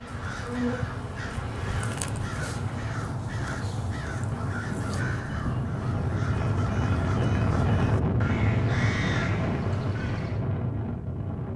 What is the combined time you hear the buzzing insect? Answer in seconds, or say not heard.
3 s.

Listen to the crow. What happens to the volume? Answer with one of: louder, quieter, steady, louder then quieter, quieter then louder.
steady.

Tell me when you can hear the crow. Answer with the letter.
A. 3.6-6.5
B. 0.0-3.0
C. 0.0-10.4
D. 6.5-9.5
C.